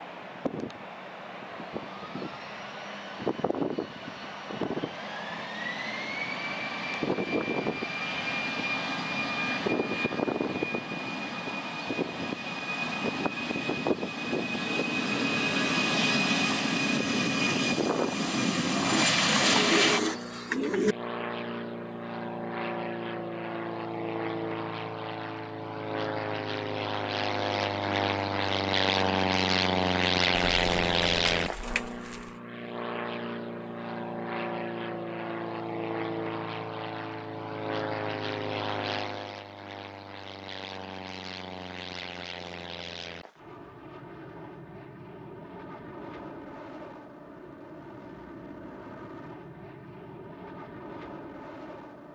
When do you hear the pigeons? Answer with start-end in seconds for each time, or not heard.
18.9-20.9, 30.4-32.3.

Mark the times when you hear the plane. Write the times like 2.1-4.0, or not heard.
0.0-52.1.